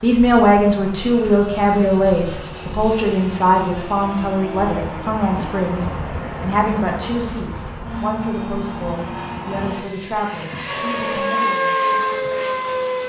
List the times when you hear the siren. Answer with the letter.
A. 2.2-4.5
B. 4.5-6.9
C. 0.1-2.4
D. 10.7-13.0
D.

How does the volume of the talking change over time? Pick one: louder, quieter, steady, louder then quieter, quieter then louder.
quieter.